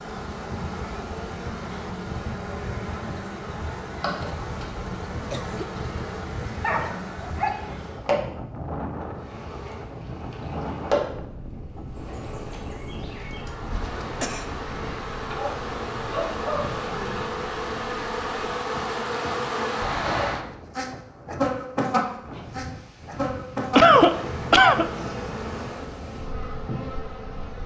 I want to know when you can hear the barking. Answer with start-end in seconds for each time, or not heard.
6.6-7.8, 15.3-17.2.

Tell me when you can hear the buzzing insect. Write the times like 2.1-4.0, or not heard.
0.0-8.2, 9.2-27.6.